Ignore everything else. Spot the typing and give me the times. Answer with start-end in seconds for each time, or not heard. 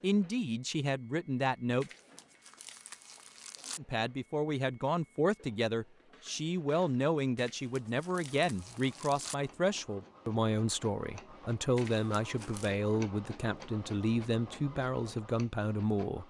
not heard.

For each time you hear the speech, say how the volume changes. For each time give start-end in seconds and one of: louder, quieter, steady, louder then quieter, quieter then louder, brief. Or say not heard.
0.0-1.9 brief
3.8-16.2 steady.